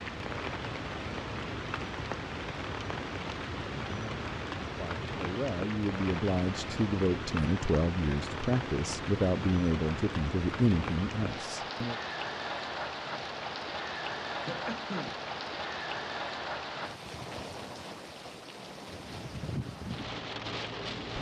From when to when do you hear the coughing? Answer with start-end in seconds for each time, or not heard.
14.4-15.2.